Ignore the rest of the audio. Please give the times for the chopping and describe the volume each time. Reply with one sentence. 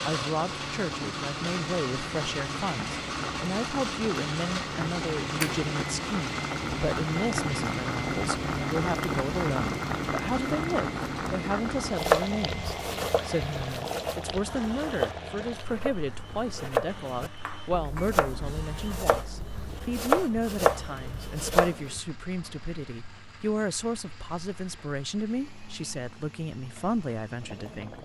The chopping can be heard from 11.9 to 22.0 s, getting louder.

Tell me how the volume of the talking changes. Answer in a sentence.
The volume of the talking stays about the same.